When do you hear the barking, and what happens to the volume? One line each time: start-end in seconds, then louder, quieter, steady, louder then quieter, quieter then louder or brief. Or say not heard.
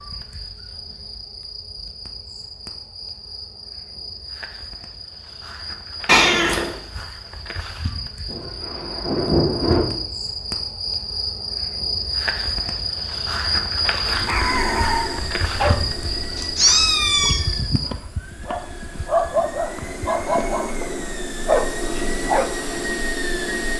14.1-22.6 quieter then louder.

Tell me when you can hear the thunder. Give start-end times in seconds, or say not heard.
8.2-9.8.